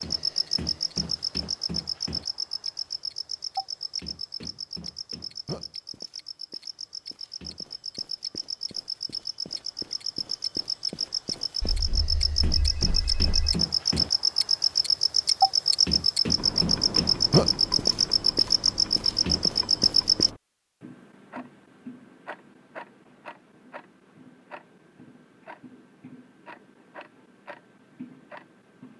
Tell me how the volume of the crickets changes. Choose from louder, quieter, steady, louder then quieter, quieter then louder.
quieter then louder.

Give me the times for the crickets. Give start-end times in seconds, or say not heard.
0.0-20.3.